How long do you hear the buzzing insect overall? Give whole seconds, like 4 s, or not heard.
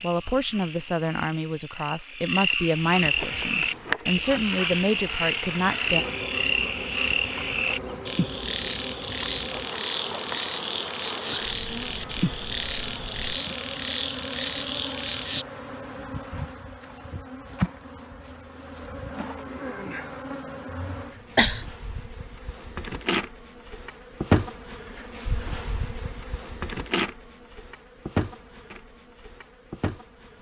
27 s.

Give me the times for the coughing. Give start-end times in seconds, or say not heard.
20.7-21.6.